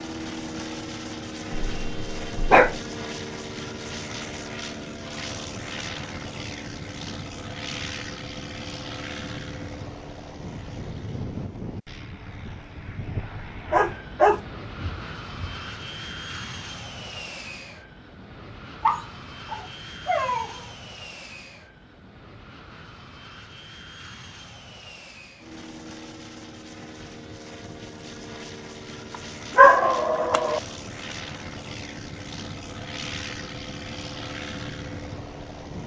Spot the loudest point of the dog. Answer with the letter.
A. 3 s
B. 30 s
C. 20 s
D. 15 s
B.